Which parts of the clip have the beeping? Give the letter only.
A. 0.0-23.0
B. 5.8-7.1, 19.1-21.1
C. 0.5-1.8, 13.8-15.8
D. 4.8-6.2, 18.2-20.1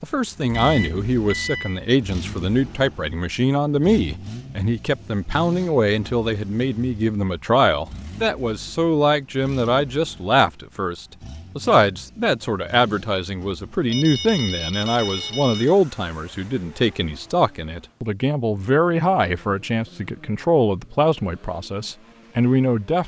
C.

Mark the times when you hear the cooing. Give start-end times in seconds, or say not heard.
not heard.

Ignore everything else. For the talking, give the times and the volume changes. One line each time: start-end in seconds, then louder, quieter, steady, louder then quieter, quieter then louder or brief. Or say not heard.
0.0-23.0 steady.